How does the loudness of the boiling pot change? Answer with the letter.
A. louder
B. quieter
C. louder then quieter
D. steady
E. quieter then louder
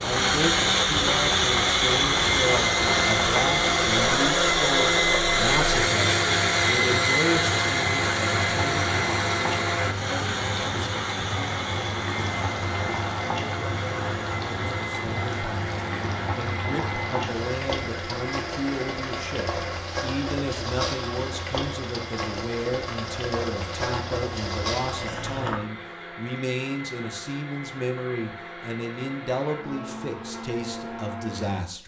D.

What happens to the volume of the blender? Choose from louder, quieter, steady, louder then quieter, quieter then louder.
quieter.